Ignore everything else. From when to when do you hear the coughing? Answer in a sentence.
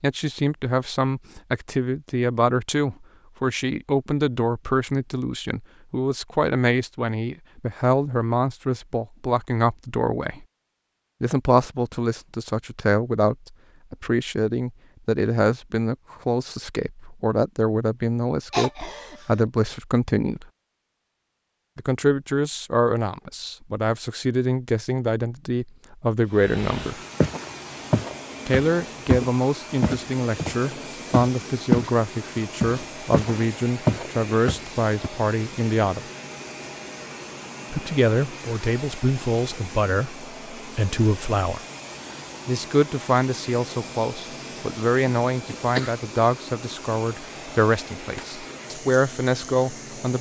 You can hear the coughing from 18.5 to 19.4 s and from 45.0 to 45.9 s.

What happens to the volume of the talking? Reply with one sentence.
The volume of the talking stays about the same.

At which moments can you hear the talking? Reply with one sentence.
You can hear the talking from 0.0 to 10.4 s, from 11.2 to 20.4 s, from 21.8 to 27.0 s, from 28.4 to 36.0 s, from 37.7 to 41.6 s and from 42.5 to 50.1 s.